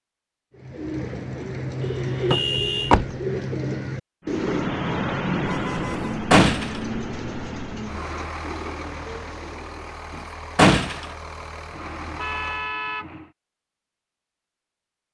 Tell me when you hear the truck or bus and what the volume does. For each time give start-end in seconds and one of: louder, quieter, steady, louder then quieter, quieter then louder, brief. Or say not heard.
4.2-12.8 quieter.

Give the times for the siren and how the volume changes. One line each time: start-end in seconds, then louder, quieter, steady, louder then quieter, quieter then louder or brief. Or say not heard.
not heard.